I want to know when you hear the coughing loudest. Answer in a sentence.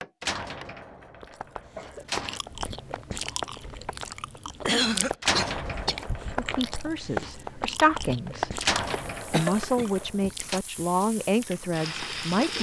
The loudest moment of the coughing is at 5 seconds.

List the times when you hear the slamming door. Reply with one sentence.
The slamming door can be heard from 0.2 to 2.4 s, from 5.2 to 6.8 s and from 8.6 to 10.6 s.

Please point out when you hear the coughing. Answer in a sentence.
The coughing can be heard from 1.6 to 2.1 s, from 4.7 to 6.0 s and from 9.3 to 11.1 s.